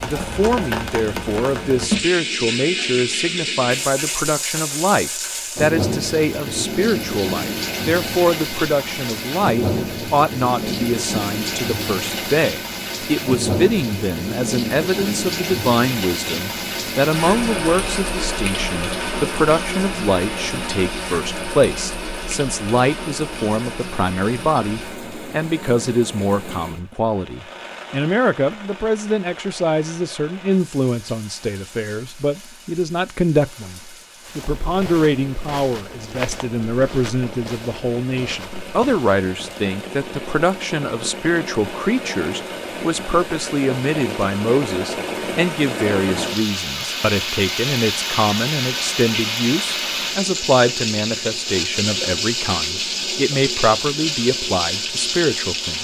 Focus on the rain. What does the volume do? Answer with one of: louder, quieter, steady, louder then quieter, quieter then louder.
quieter then louder.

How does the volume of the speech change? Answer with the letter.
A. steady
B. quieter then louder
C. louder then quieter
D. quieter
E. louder
A.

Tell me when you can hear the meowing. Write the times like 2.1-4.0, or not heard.
not heard.